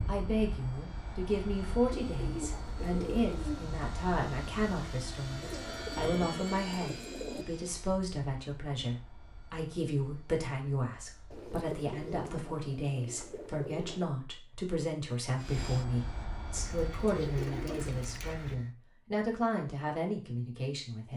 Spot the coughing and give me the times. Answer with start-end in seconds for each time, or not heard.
not heard.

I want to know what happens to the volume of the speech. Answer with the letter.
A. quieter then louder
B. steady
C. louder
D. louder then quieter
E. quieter
B.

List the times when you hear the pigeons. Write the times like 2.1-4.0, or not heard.
1.9-3.7, 5.4-7.5, 11.3-14.1, 16.6-18.6.